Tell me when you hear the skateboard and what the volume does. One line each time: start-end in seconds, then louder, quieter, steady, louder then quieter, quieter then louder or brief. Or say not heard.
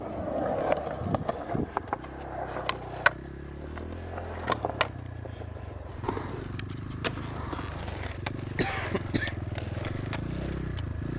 0.0-11.1 quieter.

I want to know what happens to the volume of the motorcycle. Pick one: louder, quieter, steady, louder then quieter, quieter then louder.
louder.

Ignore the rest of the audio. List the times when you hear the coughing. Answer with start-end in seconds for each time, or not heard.
8.6-9.4.